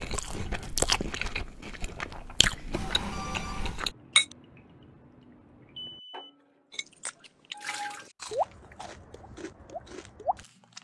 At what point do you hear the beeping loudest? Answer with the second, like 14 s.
3 s.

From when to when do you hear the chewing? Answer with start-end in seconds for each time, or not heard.
0.0-4.3, 6.7-10.7.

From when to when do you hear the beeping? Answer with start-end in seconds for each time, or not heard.
2.7-3.8, 5.8-6.3.